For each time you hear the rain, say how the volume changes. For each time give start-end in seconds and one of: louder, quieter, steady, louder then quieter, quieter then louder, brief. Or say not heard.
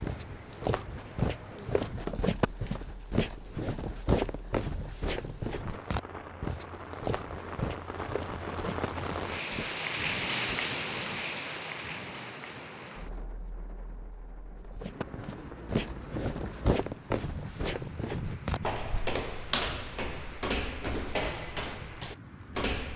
0.0-22.8 louder then quieter.